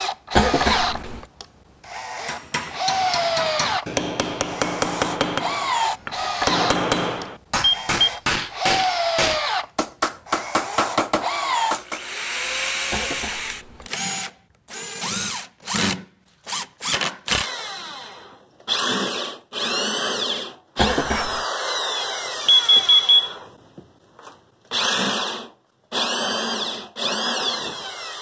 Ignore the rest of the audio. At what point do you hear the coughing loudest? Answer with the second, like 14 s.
1 s.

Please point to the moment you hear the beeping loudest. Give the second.
23 s.